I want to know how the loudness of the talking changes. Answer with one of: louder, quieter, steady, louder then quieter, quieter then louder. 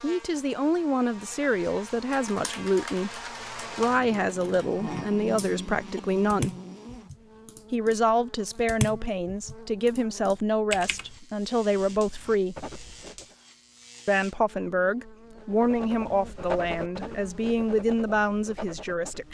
steady.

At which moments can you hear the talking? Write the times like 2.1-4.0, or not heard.
0.0-6.5, 7.7-12.6, 14.1-19.2.